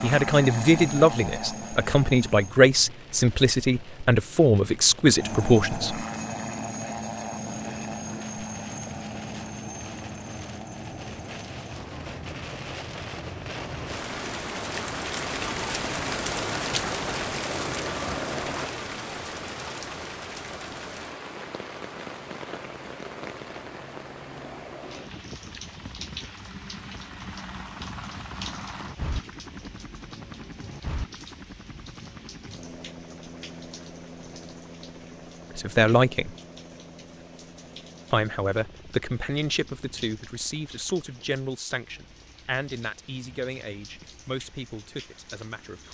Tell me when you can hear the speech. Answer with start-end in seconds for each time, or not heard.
0.0-6.0, 35.5-36.4, 38.1-45.8.